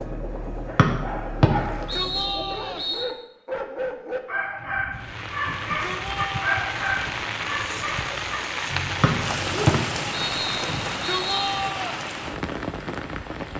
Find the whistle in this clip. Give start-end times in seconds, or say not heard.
0.8-3.0, 9.0-11.7.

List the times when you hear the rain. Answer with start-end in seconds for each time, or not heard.
4.9-13.5.